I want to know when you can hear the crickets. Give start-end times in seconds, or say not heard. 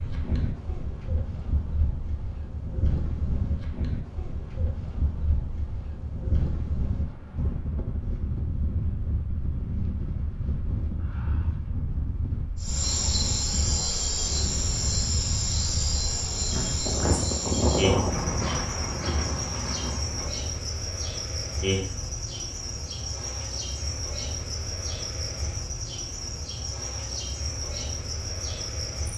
12.6-29.1.